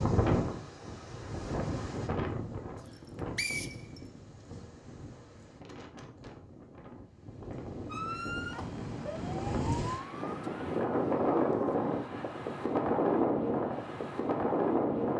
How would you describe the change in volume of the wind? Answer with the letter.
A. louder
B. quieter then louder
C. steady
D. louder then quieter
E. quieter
B.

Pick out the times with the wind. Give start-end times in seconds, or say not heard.
0.0-15.1.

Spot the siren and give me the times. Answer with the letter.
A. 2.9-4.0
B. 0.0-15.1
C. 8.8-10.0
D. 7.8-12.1
D.